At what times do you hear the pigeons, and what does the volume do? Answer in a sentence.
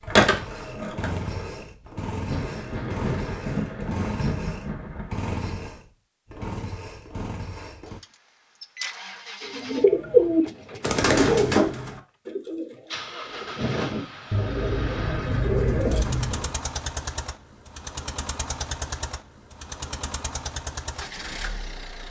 The pigeons can be heard from 9.4 to 16.5 s, getting quieter then louder.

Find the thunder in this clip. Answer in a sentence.
The thunder can be heard from 2.2 to 5.8 s.